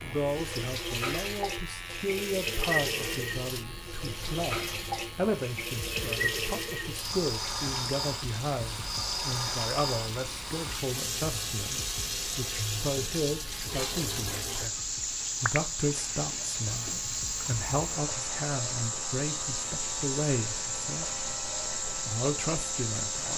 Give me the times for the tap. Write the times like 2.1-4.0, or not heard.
0.1-23.3.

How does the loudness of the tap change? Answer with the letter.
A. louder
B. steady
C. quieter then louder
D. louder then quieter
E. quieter
B.